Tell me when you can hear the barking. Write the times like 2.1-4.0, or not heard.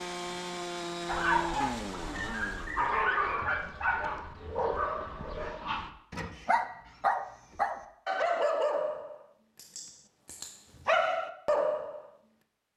1.1-12.1.